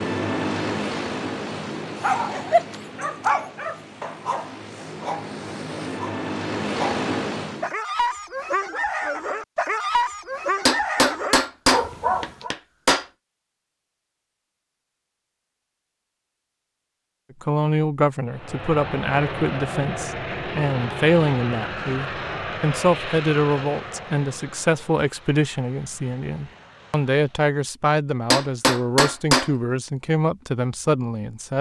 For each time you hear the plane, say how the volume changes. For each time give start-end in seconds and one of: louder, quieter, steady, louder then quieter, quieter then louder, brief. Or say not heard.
0.0-7.8 quieter then louder
18.2-27.6 quieter.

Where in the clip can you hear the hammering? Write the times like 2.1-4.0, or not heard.
10.7-13.1, 28.3-29.5.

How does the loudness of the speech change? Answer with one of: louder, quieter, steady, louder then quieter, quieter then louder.
steady.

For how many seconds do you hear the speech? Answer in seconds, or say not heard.
14 s.